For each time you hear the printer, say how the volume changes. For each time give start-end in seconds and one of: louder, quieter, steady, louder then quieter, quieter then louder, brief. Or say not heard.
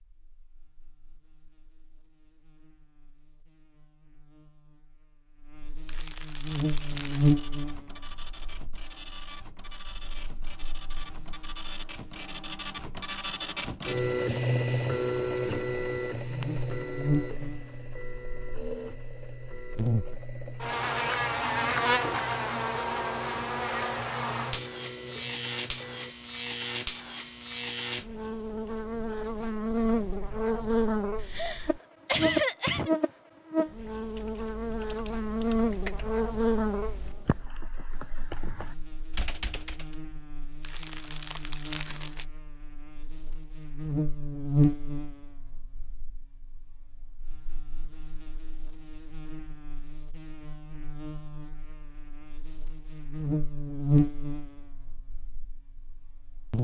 6.4-26.1 louder then quieter.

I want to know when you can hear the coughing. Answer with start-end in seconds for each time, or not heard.
31.2-32.9.